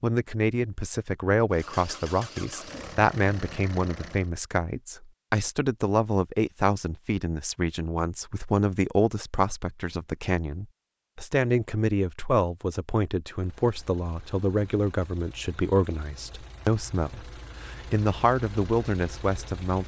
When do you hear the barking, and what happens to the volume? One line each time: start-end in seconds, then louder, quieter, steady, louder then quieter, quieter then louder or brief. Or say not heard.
not heard.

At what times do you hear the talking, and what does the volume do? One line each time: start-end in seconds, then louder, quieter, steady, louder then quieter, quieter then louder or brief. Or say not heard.
0.0-19.8 steady.